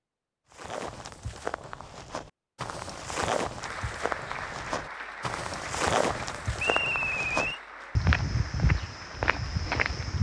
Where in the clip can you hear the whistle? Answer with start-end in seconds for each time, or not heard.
6.5-7.6.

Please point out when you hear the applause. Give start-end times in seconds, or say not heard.
3.6-10.1.